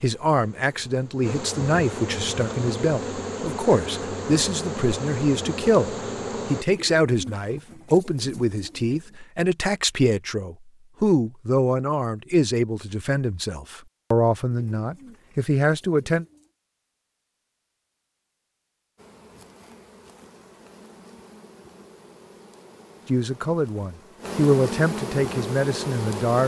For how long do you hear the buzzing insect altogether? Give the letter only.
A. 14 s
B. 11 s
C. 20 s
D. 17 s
A.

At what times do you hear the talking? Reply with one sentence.
You can hear the talking from 0.0 to 16.2 s and from 23.1 to 26.4 s.